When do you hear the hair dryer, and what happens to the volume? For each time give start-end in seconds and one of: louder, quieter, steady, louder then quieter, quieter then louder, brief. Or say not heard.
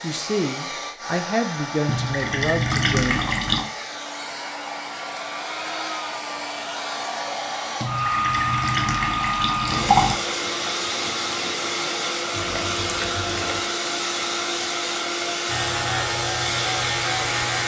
0.0-17.6 louder.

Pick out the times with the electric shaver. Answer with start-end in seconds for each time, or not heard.
15.4-17.6.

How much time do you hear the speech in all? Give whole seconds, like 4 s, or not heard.
3 s.